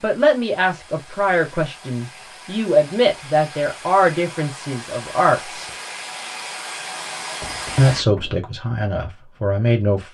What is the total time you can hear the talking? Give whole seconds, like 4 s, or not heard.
8 s.